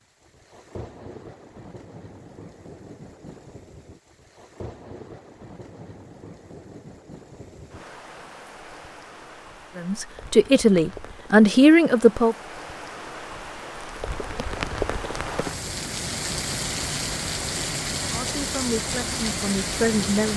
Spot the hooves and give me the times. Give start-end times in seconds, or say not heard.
not heard.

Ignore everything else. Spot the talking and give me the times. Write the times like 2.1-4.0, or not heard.
9.8-12.3, 18.1-20.3.